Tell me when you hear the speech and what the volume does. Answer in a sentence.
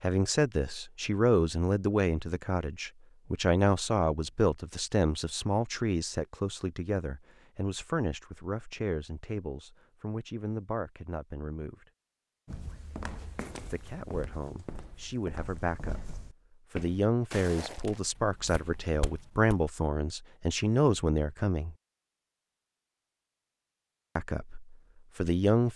The speech can be heard from 0.0 to 11.8 s, getting quieter; from 13.6 to 21.8 s, getting louder; and briefly from 24.1 to 25.7 s.